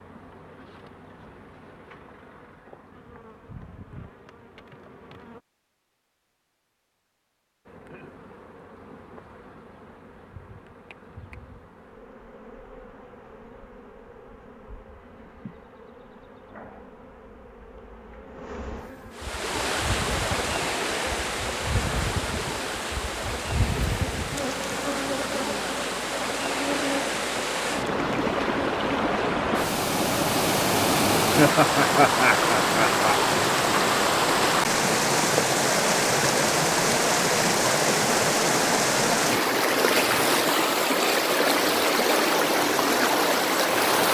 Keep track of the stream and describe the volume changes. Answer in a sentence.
The volume of the stream goes up.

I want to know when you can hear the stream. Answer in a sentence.
You can hear the stream from 19.1 to 44.0 s.